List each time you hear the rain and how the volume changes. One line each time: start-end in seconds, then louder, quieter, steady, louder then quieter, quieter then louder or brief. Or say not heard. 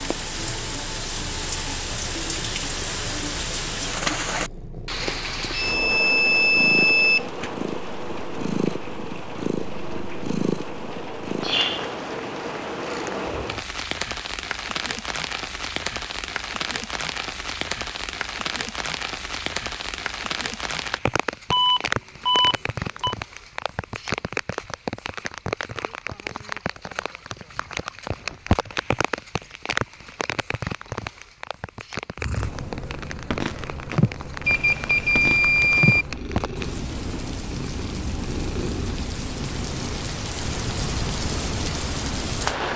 0.0-42.7 steady.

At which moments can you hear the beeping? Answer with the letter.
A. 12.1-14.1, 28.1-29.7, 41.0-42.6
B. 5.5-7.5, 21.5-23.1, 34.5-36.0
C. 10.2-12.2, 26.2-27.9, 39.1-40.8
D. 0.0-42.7
B.